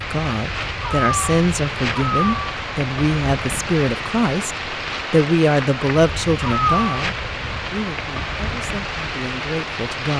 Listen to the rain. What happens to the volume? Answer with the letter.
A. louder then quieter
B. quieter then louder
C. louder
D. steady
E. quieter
D.